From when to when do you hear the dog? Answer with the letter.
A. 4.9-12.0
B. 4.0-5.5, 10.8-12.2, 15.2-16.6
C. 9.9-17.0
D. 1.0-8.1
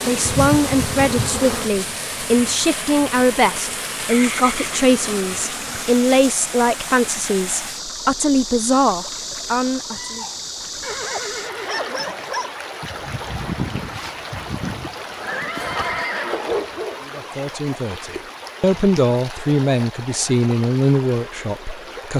C.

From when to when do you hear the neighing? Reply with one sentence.
The neighing can be heard from 4.0 to 5.5 s, from 10.8 to 12.2 s and from 15.2 to 16.6 s.